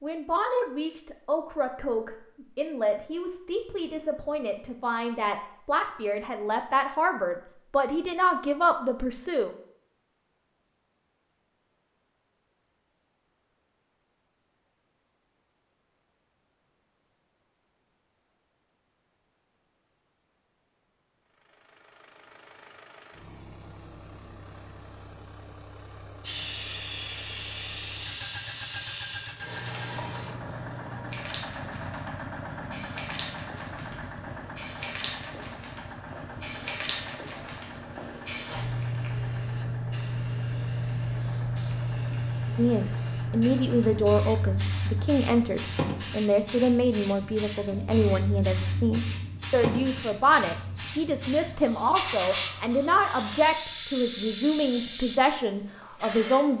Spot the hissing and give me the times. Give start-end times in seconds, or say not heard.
26.2-56.5.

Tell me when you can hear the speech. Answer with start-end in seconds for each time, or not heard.
0.0-9.5, 42.5-56.5.